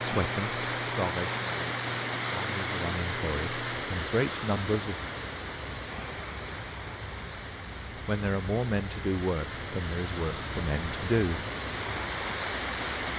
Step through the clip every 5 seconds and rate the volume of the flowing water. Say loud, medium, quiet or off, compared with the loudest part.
loud, medium, loud.